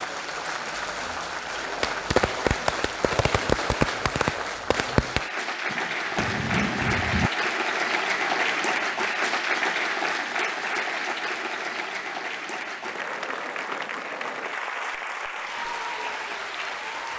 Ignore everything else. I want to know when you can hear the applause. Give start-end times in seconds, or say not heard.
0.0-17.1.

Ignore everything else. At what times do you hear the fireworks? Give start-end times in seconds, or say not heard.
1.5-7.5.